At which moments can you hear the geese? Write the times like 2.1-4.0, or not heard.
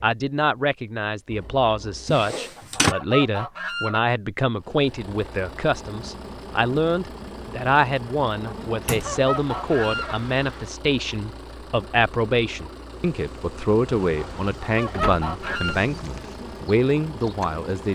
2.3-4.0, 8.4-10.2, 14.2-15.8.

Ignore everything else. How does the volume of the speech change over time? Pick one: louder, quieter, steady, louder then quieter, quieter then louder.
steady.